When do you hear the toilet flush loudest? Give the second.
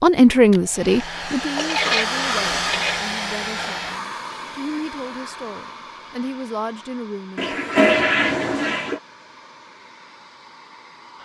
8 s.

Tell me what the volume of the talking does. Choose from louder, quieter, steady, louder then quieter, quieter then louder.
quieter then louder.